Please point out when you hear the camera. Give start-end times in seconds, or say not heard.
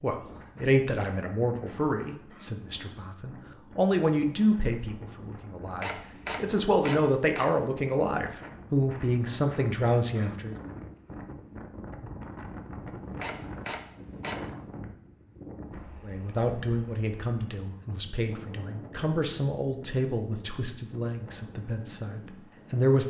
5.8-7.5, 13.2-14.6.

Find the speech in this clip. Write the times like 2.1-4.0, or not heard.
0.0-10.6, 16.0-23.0.